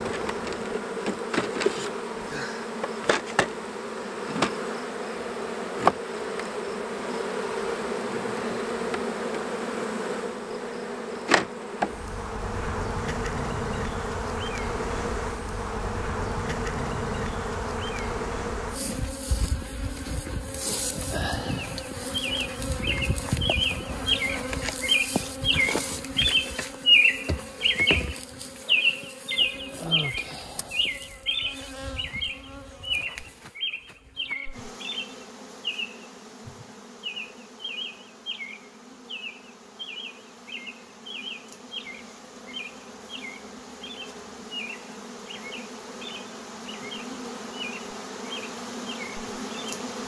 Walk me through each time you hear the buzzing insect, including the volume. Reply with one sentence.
You can hear the buzzing insect from 0.0 to 50.0 s, getting quieter.